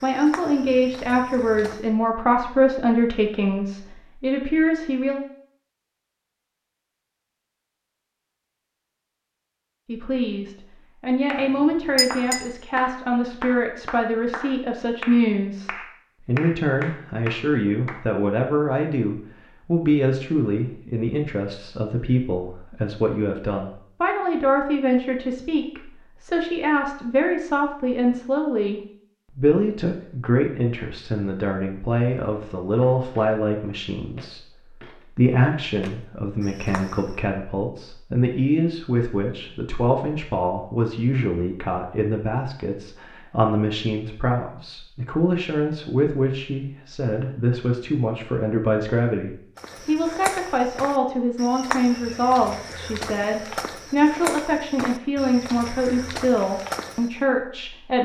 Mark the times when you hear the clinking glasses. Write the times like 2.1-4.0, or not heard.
11.4-12.4.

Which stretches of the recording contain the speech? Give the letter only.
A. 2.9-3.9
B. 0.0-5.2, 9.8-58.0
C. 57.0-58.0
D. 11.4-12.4
B.